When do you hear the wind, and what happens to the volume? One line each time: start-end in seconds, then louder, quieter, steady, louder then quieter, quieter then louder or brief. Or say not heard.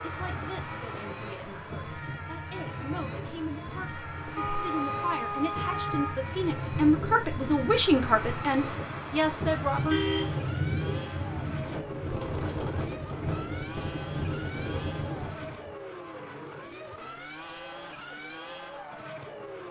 0.0-15.7 louder.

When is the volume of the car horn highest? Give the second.
10 s.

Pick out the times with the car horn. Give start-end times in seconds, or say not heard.
4.3-6.2, 9.9-10.4.